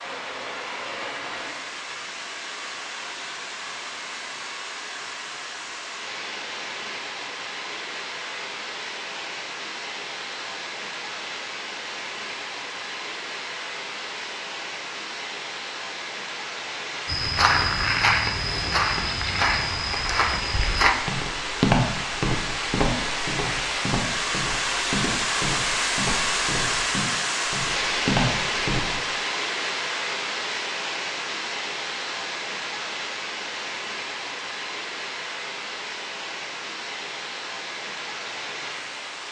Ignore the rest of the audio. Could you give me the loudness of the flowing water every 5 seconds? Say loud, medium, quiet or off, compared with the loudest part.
medium, medium, medium, medium, loud, loud, medium, medium.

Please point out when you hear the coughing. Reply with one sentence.
The coughing can't be heard in this clip.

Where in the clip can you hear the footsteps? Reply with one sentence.
The footsteps can be heard from 17.1 to 28.9 s.